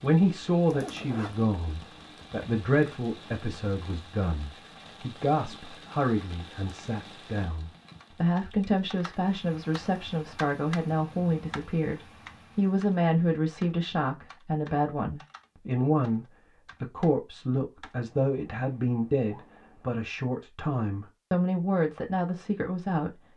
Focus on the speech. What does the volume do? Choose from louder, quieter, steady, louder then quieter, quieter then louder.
steady.